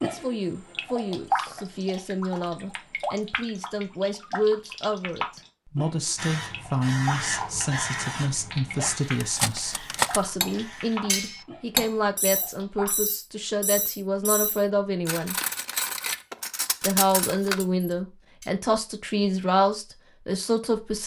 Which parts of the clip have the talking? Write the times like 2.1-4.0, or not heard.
0.0-15.3, 16.8-21.0.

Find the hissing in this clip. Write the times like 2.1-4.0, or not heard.
6.2-11.4.